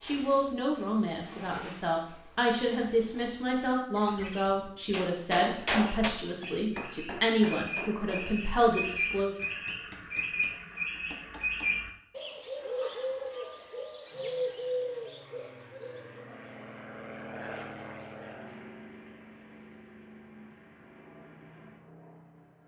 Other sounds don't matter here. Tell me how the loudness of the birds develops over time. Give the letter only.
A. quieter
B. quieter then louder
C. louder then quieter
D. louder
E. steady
D.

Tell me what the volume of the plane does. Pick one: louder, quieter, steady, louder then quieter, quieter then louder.
louder then quieter.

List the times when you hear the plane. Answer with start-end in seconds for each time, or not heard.
14.1-22.6.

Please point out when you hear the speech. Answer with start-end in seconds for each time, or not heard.
0.0-9.3.